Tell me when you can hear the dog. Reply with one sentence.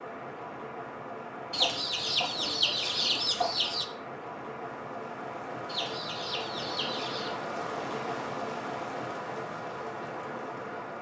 You can't hear the dog here.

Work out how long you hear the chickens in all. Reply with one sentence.
You can hear the chickens for 4 seconds altogether.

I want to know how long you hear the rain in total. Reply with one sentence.
The rain can be heard for 11 seconds in total.